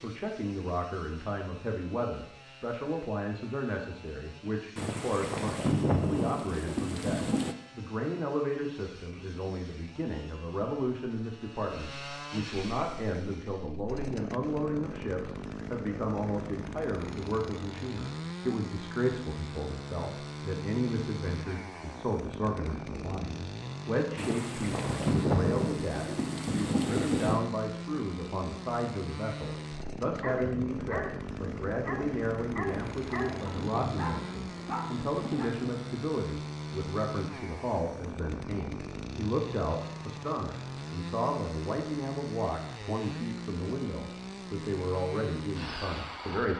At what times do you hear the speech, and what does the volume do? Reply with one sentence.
The speech can be heard from 0.0 to 46.5 s, at a steady volume.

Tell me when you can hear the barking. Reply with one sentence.
The barking can be heard from 30.1 to 35.5 s.